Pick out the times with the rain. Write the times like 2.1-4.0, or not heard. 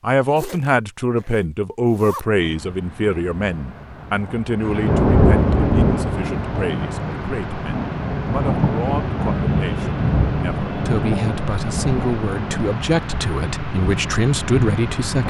2.4-15.2.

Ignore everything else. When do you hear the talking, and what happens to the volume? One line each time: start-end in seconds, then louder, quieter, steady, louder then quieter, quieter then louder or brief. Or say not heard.
0.0-15.2 quieter then louder.